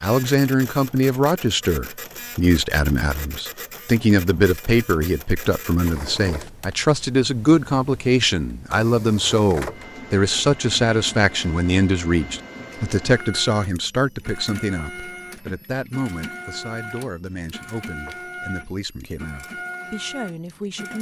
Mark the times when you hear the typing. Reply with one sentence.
The typing can't be heard in this clip.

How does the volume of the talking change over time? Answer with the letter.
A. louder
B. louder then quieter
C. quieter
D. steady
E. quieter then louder
C.